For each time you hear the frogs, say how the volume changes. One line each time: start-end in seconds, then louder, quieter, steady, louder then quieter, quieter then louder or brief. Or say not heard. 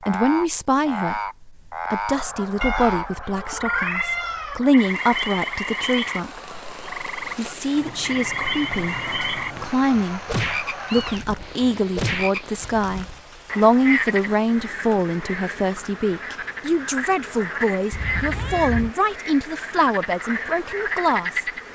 0.0-21.6 steady.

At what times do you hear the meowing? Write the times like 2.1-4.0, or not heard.
2.6-4.6, 10.8-11.5, 17.9-18.9.